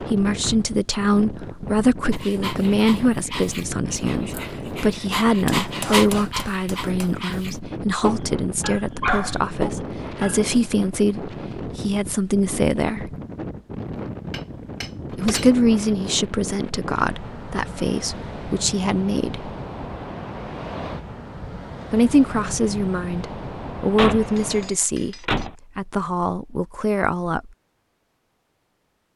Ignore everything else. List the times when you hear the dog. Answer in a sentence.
The dog can be heard from 2.1 to 10.4 s.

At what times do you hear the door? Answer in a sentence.
The door can be heard from 0.2 to 0.7 s, from 15.1 to 15.5 s and from 23.9 to 25.6 s.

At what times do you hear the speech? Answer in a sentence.
You can hear the speech from 0.0 to 13.2 s, from 15.1 to 19.5 s and from 21.9 to 27.5 s.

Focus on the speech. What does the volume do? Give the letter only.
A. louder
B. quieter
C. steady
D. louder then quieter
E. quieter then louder
C.